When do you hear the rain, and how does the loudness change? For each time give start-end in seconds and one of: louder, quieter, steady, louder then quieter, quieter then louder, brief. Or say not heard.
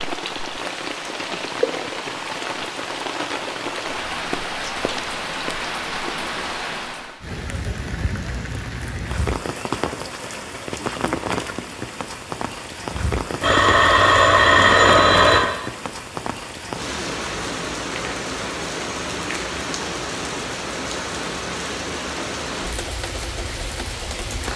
0.0-24.5 steady.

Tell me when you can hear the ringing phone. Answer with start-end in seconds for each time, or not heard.
13.4-15.4.